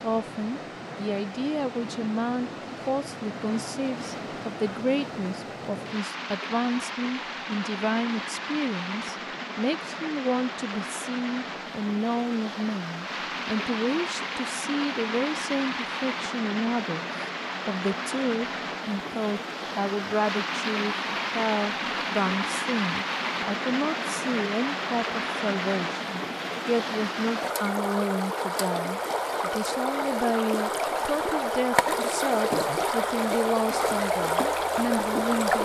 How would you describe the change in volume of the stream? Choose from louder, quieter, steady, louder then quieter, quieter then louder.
louder.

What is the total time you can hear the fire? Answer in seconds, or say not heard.
not heard.